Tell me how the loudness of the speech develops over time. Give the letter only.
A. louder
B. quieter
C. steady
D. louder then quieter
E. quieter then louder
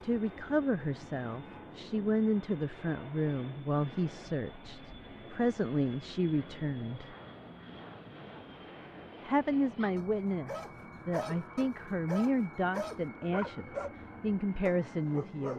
C.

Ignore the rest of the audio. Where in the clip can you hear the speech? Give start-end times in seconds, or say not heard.
0.0-7.2, 9.2-15.5.